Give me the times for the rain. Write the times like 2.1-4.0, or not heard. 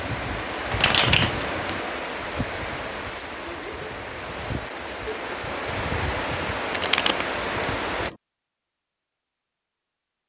0.0-8.1.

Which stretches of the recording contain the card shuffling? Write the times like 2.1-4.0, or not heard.
0.7-1.8, 6.7-8.2.